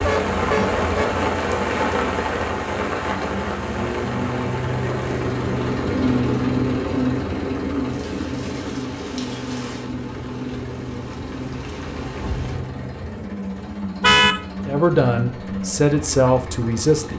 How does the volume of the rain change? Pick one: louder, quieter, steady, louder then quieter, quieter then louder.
quieter.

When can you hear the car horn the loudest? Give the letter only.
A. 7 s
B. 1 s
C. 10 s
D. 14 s
D.